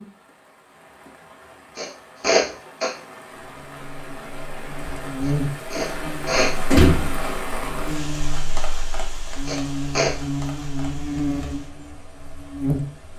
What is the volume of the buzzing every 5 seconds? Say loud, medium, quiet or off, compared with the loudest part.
quiet, loud, loud.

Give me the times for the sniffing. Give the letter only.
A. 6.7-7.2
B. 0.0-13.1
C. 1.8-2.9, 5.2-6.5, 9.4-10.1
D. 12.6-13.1
C.